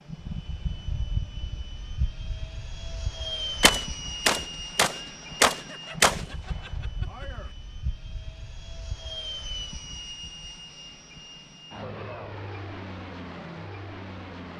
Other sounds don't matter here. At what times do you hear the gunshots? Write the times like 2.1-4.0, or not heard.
3.6-7.5.